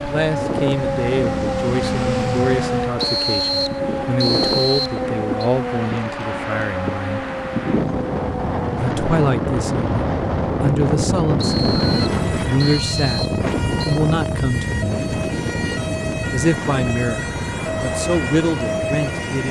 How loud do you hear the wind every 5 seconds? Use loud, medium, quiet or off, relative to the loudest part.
medium, loud, loud, medium.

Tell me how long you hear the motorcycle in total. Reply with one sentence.
You can hear the motorcycle for 3 seconds altogether.